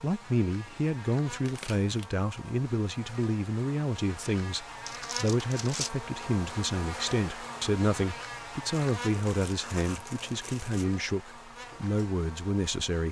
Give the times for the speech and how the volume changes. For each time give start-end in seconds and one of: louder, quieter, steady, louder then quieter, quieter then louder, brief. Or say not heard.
0.0-13.0 steady.